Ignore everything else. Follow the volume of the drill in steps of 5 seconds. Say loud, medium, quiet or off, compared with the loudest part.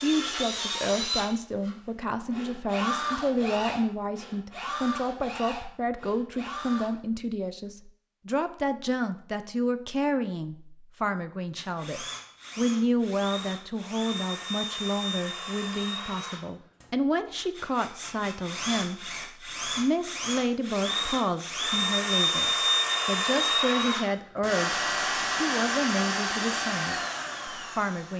medium, quiet, medium, medium, loud, loud.